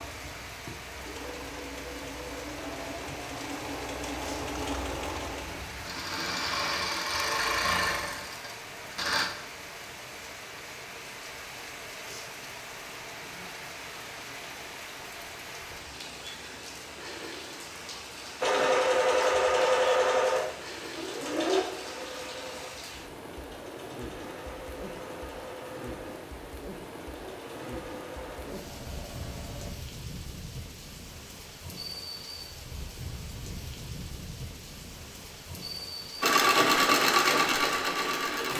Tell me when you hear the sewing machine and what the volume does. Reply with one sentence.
You can hear the sewing machine from 0.0 to 9.3 s, getting louder; from 18.4 to 29.8 s, getting quieter; and briefly from 36.2 to 38.5 s.